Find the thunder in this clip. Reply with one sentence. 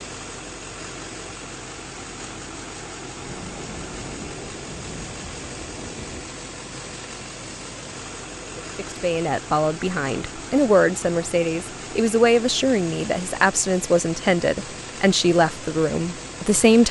The thunder can be heard from 3.2 to 6.3 s.